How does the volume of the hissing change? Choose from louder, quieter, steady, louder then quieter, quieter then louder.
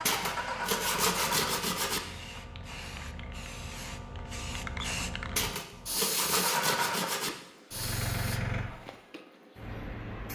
louder then quieter.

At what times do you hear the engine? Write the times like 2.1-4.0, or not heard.
0.0-1.6, 6.3-8.7.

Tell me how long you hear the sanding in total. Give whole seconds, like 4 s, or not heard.
4 s.